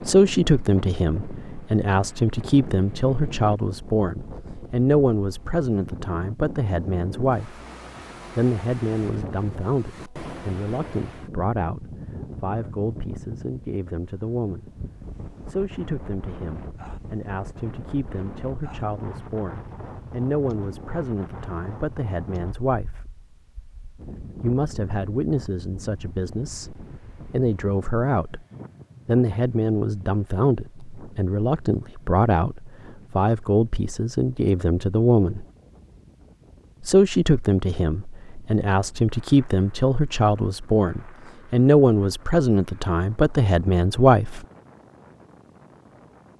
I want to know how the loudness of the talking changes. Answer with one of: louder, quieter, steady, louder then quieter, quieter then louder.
quieter then louder.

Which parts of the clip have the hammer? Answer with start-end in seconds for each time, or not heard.
not heard.